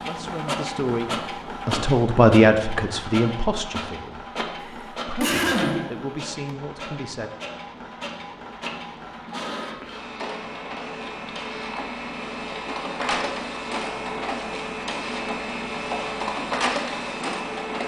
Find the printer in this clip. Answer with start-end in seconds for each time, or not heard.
0.0-17.8.